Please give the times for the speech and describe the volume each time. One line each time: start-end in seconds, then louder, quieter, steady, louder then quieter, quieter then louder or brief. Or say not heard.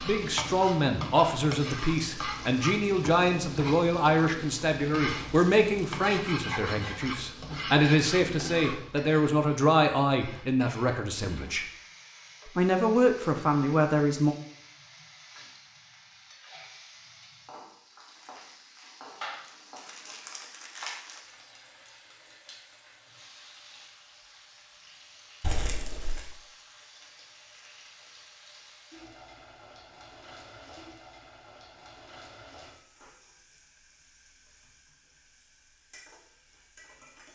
0.0-11.7 steady
12.6-14.3 brief.